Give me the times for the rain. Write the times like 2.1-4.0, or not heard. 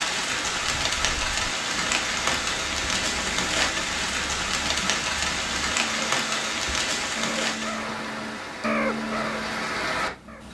0.0-10.4.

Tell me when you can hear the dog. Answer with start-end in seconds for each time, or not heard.
not heard.